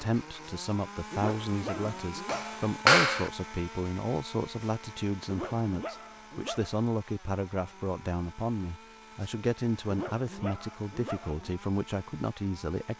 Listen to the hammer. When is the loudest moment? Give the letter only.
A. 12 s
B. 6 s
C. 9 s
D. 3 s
D.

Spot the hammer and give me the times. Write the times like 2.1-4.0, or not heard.
1.7-3.3.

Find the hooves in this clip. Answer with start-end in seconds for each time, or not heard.
not heard.